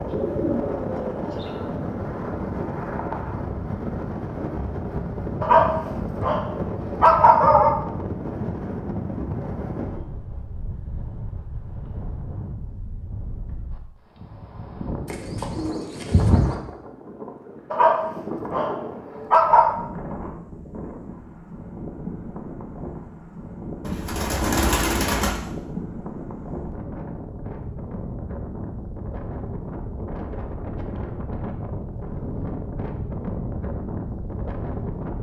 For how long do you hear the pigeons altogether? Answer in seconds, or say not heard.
5 s.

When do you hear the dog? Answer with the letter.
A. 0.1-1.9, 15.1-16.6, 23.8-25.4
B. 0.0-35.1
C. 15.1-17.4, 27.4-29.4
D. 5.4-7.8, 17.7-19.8
D.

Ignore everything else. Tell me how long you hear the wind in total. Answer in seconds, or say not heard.
35 s.